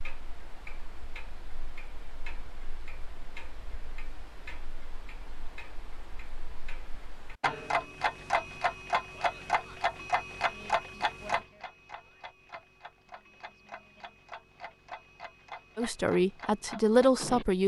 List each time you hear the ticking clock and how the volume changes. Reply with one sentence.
You can hear the ticking clock from 0.0 to 17.4 s, getting louder then quieter.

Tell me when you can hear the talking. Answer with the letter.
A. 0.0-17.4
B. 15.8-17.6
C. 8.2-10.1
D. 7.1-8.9
B.